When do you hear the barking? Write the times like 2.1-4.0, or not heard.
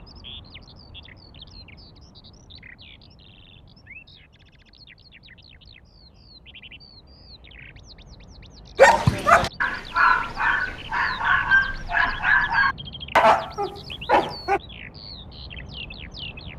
8.8-14.6.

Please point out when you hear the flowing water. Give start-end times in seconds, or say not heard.
not heard.